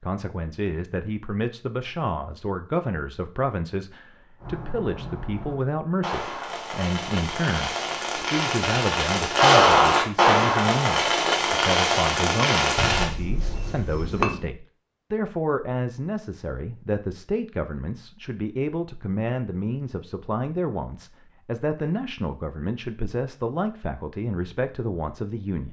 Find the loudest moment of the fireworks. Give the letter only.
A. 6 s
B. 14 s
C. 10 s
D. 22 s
C.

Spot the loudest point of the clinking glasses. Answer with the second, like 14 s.
14 s.